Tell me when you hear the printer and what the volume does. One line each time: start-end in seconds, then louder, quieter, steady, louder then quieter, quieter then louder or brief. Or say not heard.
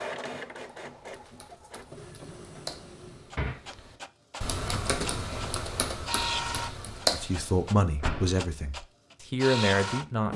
0.0-10.3 louder.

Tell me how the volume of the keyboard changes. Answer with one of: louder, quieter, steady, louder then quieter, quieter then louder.
louder.